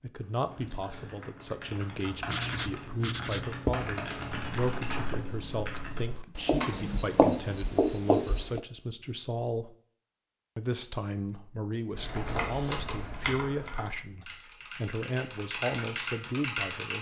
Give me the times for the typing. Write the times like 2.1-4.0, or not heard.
0.2-6.8, 11.9-16.9.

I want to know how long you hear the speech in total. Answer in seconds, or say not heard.
16 s.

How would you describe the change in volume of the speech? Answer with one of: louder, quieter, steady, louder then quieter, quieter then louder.
steady.